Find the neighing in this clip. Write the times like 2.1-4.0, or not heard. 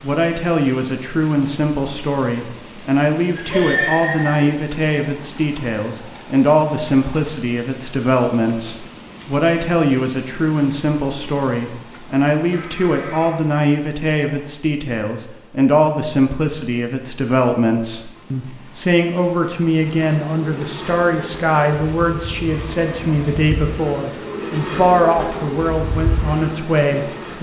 3.4-4.5, 12.5-13.3, 22.4-23.5.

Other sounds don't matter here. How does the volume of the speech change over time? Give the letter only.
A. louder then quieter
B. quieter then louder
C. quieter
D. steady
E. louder
D.